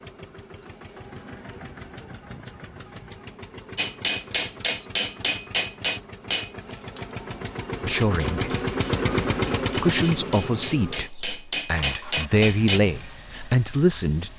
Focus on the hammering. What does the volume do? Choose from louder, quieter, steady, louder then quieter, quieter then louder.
quieter then louder.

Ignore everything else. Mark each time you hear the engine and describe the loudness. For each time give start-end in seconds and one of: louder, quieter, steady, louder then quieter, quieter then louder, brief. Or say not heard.
0.0-14.3 louder then quieter.